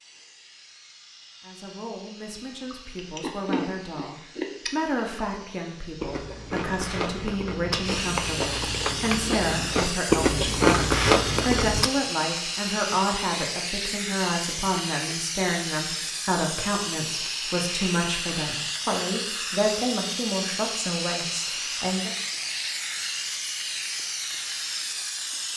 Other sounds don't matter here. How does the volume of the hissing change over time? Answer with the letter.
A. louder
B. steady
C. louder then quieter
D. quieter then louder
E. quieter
A.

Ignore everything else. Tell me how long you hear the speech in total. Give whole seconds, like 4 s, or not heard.
21 s.